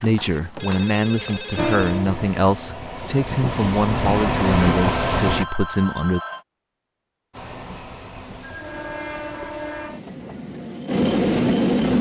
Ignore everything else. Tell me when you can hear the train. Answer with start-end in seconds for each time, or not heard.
1.6-5.5, 7.3-11.9.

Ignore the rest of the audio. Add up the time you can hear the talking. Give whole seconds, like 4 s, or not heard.
6 s.